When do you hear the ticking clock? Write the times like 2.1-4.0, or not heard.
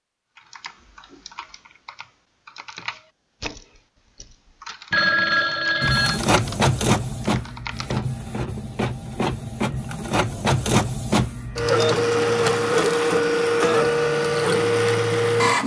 not heard.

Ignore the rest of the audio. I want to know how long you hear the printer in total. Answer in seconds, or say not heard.
10 s.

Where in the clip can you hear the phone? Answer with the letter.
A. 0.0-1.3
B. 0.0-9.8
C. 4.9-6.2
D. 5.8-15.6
C.